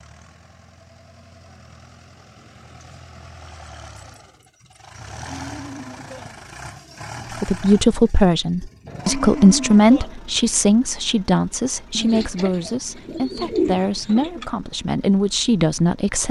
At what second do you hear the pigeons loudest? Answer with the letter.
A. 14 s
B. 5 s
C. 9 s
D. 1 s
A.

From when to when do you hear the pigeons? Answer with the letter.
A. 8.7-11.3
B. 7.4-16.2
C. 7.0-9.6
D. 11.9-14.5
D.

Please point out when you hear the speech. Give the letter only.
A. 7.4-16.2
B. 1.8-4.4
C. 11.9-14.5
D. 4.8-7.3
A.